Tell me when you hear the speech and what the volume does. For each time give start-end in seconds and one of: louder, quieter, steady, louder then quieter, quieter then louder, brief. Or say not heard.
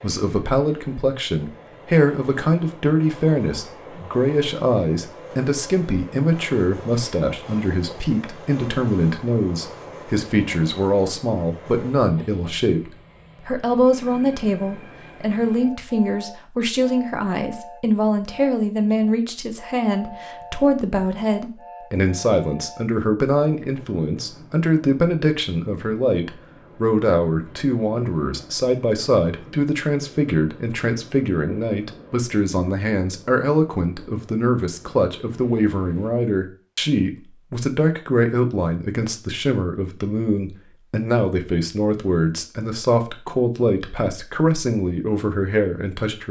0.0-46.2 steady.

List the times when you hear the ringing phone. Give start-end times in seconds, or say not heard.
not heard.